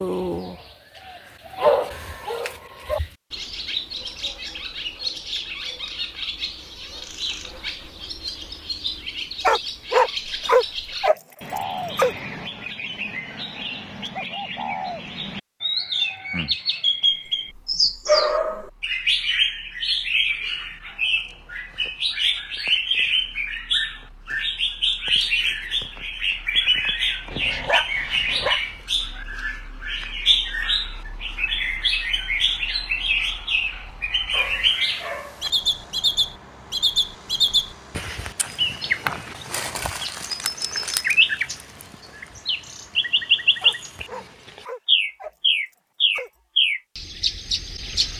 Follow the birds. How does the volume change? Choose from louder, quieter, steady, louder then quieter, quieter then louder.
louder.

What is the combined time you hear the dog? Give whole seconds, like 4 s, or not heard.
10 s.